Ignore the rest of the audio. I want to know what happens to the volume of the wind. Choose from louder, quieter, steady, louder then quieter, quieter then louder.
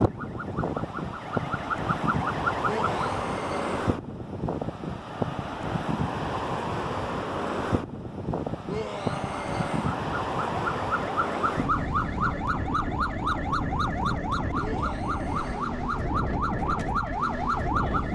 steady.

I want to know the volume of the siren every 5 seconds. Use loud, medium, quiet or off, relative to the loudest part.
loud, off, loud, loud.